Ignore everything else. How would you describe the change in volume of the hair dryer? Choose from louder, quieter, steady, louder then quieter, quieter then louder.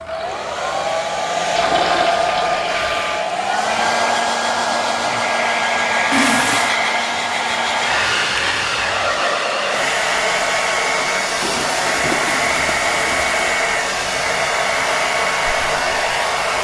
steady.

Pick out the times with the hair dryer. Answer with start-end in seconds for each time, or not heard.
0.0-16.5.